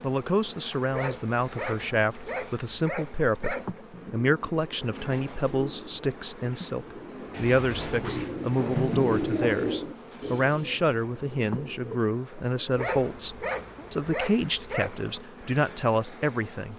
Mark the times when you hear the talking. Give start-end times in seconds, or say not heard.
0.0-16.7.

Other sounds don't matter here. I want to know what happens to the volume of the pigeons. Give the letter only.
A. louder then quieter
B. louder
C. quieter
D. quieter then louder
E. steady
A.